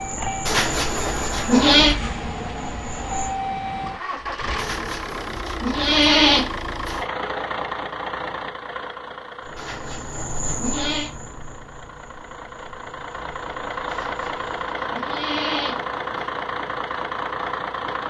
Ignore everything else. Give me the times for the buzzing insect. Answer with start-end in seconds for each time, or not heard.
0.0-3.4, 9.4-14.7.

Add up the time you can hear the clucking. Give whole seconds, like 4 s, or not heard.
not heard.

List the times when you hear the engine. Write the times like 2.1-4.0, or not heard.
0.0-18.0.